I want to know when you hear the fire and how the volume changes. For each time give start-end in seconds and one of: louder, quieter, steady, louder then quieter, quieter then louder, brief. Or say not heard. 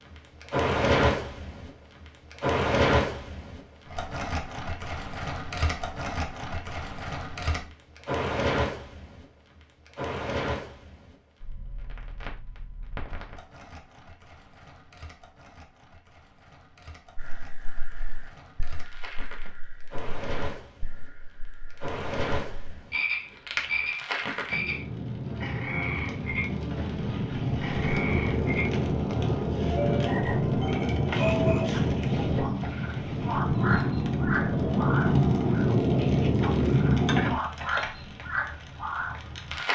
0.0-39.6 quieter then louder.